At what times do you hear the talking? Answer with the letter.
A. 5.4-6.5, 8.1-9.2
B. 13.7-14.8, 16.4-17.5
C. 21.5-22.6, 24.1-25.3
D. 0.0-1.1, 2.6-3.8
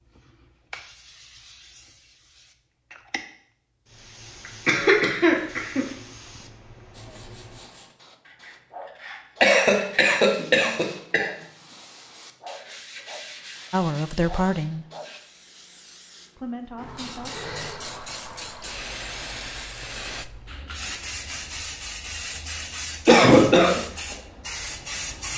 B.